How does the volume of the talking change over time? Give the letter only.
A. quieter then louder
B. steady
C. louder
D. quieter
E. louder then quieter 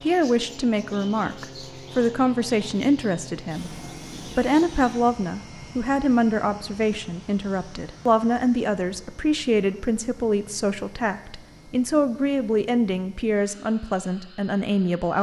B.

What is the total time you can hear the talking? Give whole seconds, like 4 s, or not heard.
15 s.